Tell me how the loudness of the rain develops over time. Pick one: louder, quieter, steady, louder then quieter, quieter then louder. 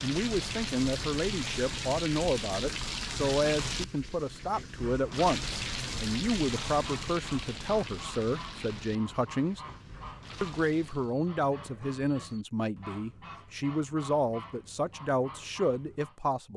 quieter.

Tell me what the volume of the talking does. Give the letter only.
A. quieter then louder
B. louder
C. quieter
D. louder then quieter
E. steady
E.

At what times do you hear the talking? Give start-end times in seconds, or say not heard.
0.0-9.6, 10.4-16.5.